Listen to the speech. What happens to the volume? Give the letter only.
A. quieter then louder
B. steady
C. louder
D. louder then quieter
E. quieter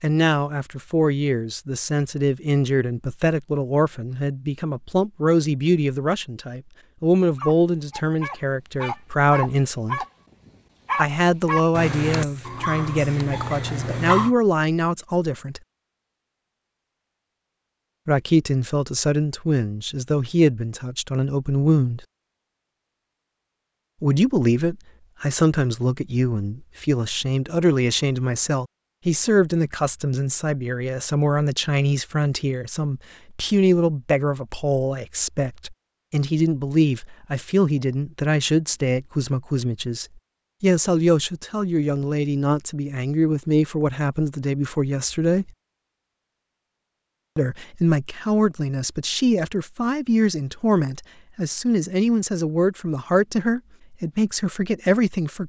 B.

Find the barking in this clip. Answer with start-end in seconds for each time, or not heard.
7.3-14.3.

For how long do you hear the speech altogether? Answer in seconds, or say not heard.
48 s.